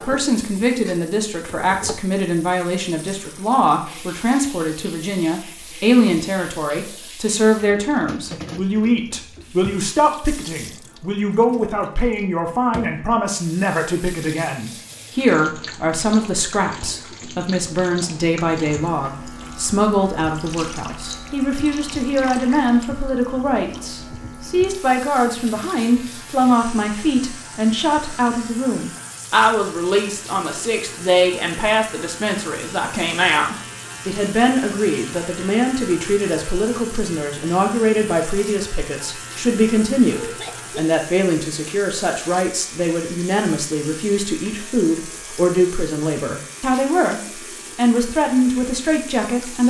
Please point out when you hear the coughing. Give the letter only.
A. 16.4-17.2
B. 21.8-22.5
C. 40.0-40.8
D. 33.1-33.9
C.